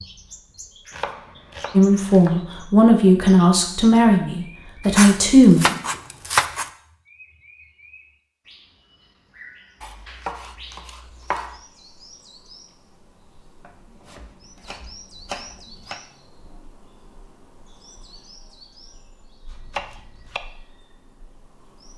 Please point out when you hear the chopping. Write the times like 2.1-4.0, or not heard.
0.9-2.5, 4.8-6.7, 9.8-11.6, 13.6-16.0, 19.4-20.4.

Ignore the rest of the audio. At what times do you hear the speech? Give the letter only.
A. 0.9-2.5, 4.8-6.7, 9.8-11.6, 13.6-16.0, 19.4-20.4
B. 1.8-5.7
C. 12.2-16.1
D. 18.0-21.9
B.